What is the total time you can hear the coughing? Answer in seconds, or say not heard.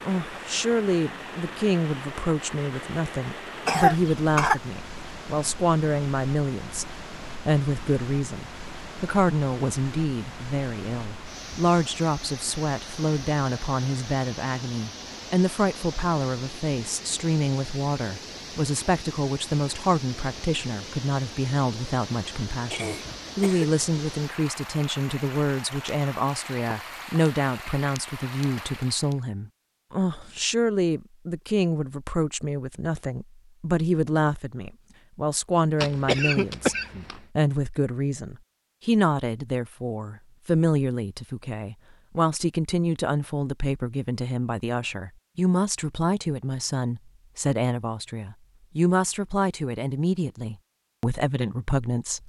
3 s.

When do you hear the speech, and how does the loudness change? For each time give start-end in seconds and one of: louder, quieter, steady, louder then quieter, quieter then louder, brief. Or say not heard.
0.1-36.8 steady
37.4-52.2 steady.